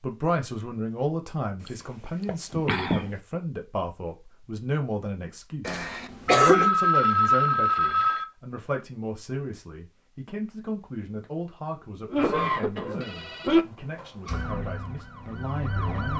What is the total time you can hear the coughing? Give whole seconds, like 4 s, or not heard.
4 s.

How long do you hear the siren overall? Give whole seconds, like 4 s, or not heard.
2 s.